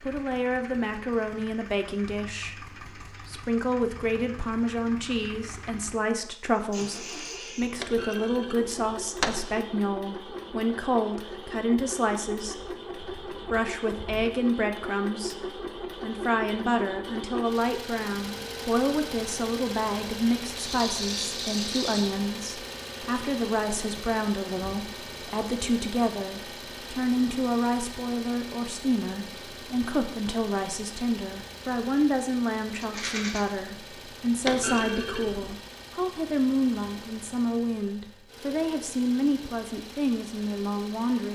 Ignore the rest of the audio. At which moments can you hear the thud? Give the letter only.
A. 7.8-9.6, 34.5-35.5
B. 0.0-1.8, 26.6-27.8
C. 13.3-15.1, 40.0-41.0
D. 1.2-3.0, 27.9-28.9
A.